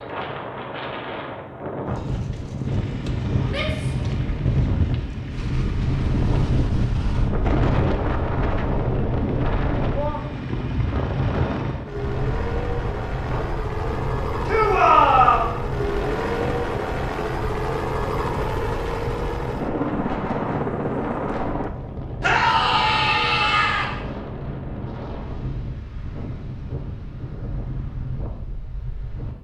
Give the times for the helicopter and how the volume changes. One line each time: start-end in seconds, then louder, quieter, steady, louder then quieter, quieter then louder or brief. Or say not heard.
2.6-21.7 louder.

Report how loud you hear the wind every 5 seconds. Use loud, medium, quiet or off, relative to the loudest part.
loud, loud, medium, medium, medium, medium.